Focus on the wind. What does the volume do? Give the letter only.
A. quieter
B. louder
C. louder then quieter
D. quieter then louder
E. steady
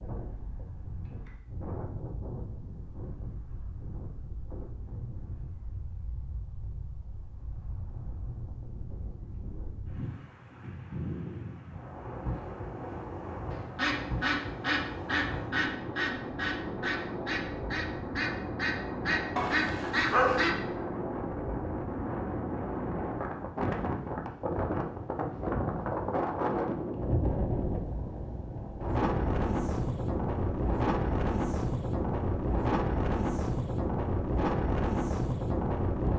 B.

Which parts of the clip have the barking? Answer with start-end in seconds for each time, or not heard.
19.4-20.5.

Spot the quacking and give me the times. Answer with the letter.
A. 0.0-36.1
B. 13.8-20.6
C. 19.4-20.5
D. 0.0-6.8
B.